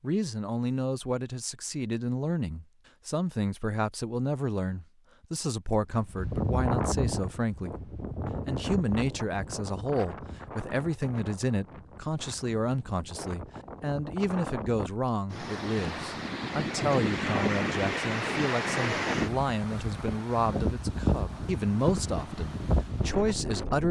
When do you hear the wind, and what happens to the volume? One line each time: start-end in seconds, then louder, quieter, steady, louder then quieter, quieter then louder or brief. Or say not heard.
5.9-23.8 quieter then louder.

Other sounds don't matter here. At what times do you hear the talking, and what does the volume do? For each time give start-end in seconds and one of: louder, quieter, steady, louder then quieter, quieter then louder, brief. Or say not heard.
0.0-23.8 steady.